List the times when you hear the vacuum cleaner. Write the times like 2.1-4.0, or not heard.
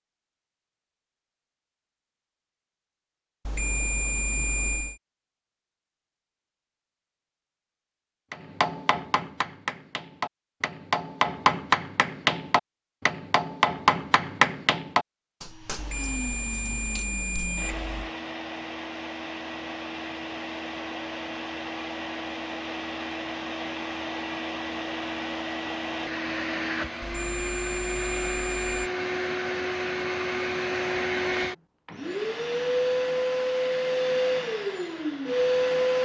15.4-35.9.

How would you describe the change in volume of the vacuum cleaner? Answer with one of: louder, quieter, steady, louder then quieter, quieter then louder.
louder.